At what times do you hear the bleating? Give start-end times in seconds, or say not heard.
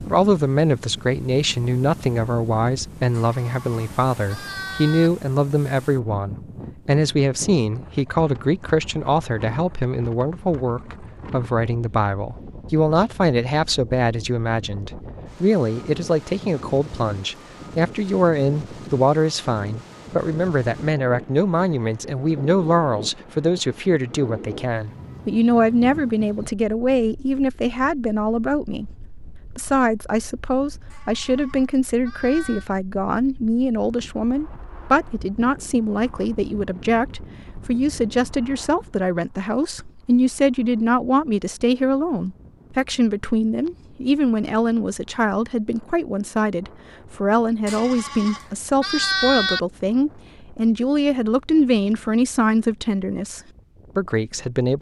3.1-5.1, 30.9-32.6, 47.6-49.6.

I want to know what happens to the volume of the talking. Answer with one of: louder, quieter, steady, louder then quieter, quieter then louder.
steady.